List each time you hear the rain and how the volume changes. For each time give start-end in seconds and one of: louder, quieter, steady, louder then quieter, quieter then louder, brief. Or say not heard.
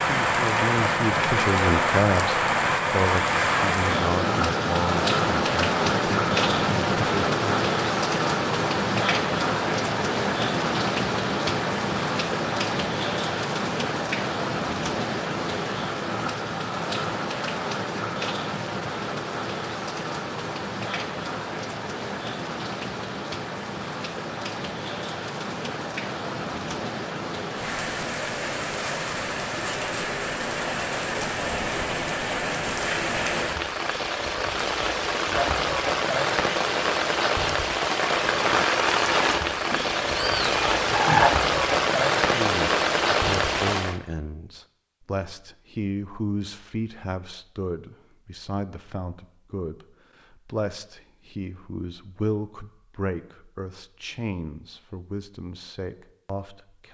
0.0-44.0 quieter then louder.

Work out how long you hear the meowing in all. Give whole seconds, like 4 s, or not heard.
2 s.